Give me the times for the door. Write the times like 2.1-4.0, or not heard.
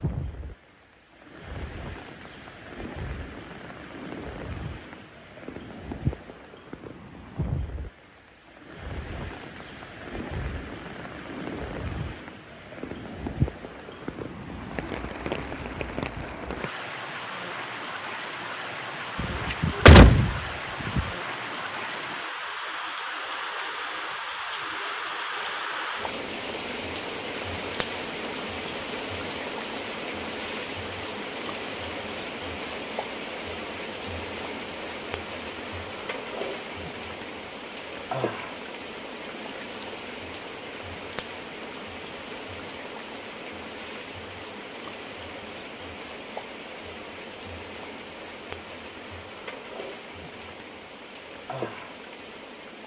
19.1-21.1.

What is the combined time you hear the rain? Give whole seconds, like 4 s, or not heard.
53 s.